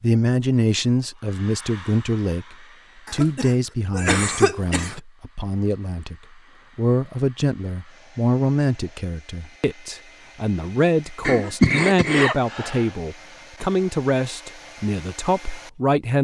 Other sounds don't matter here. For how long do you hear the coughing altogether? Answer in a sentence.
The coughing can be heard for 4 seconds in total.